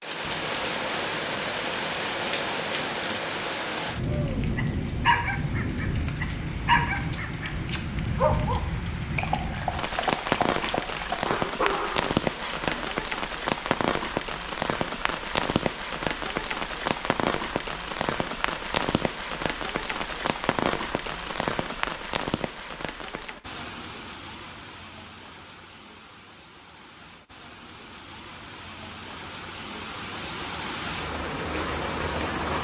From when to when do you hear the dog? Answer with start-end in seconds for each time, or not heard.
4.0-12.8.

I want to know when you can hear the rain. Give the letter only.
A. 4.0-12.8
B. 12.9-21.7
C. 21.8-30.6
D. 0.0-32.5
D.